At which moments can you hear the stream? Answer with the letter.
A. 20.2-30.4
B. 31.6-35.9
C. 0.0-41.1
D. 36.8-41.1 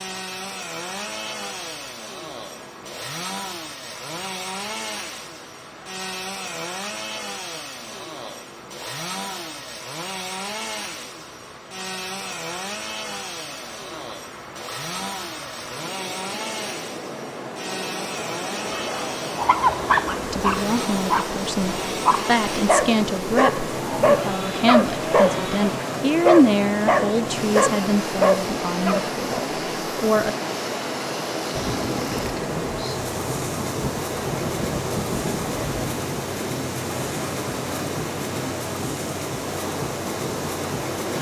C.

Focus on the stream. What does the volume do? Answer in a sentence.
The volume of the stream goes up.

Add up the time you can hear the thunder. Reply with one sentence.
The thunder can be heard for 4 seconds in total.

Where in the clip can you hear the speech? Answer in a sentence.
The speech can be heard from 20.2 to 30.4 s.